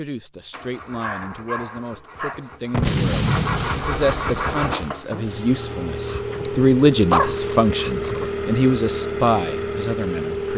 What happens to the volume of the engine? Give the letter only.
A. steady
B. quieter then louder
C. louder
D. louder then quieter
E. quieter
C.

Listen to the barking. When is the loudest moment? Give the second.
7 s.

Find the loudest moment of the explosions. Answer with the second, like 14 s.
3 s.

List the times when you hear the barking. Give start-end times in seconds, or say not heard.
0.9-2.5, 6.0-8.3.